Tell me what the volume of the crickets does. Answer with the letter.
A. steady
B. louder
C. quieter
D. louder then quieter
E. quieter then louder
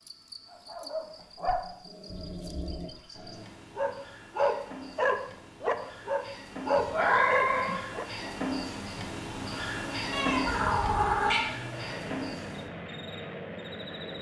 D.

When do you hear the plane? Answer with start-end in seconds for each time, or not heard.
9.7-14.1.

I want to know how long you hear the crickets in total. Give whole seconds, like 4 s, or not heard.
14 s.